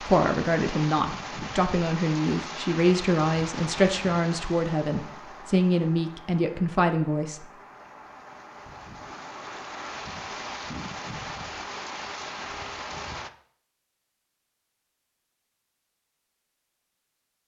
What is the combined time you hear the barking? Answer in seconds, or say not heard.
not heard.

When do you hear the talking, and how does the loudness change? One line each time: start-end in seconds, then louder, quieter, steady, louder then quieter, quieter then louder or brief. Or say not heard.
0.0-7.5 steady.